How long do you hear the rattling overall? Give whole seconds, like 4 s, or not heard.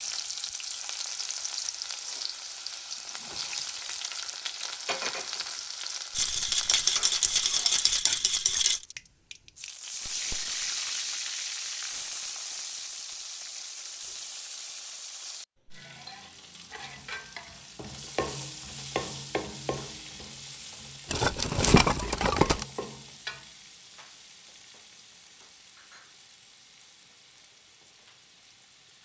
4 s.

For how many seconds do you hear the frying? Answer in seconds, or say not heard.
29 s.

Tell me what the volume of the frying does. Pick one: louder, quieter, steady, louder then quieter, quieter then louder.
quieter.